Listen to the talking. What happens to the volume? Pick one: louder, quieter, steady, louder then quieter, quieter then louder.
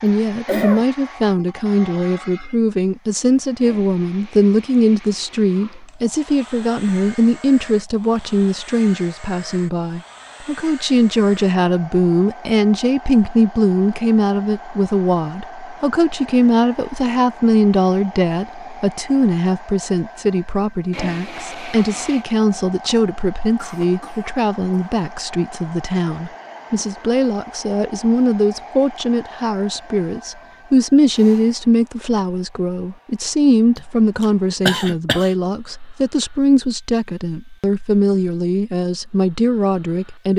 steady.